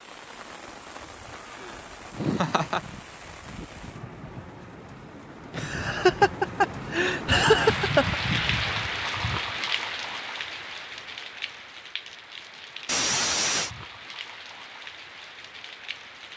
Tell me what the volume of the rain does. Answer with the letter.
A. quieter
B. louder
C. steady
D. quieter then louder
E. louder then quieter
E.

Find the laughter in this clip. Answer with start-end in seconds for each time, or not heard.
2.1-2.8, 5.5-8.2, 12.8-13.7.